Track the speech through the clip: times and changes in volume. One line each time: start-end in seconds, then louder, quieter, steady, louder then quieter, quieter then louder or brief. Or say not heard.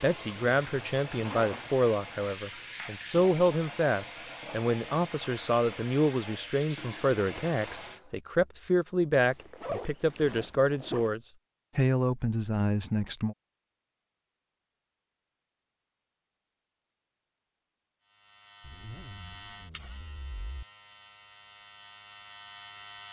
0.0-13.3 steady.